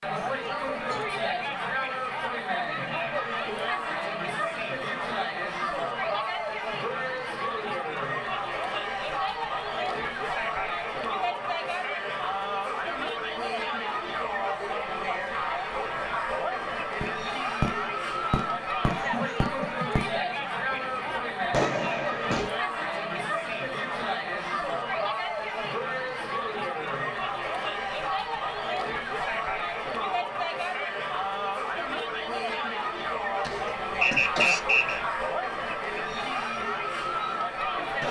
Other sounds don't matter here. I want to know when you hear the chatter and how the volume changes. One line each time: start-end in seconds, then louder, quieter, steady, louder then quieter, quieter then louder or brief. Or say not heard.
0.0-38.0 steady.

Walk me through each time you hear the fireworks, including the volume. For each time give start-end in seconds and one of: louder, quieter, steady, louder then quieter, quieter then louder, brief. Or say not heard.
17.0-22.5 quieter then louder.